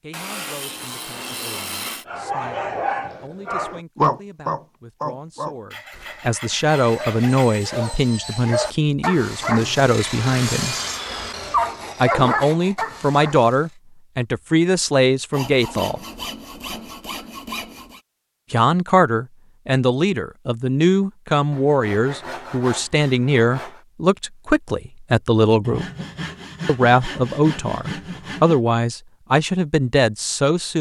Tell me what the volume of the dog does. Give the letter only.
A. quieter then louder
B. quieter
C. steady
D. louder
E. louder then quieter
A.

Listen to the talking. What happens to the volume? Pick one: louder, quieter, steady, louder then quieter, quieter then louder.
louder.